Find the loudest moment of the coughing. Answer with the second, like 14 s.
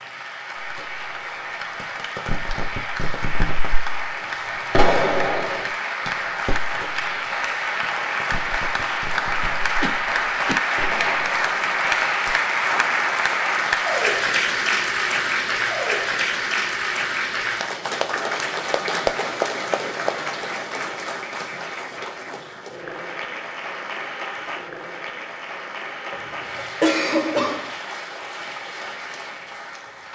27 s.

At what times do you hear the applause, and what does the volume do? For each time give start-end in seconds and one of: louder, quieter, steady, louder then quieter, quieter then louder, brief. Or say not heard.
0.0-30.1 louder then quieter.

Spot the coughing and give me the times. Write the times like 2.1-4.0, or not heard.
9.8-10.6, 26.1-27.7.